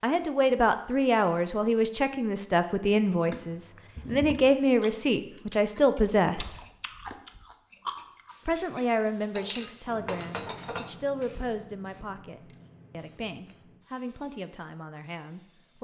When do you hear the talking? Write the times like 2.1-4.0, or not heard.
0.0-6.6, 8.4-15.8.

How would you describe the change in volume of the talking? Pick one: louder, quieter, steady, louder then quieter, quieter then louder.
quieter.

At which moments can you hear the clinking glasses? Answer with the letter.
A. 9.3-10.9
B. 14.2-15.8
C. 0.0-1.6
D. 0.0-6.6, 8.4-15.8
A.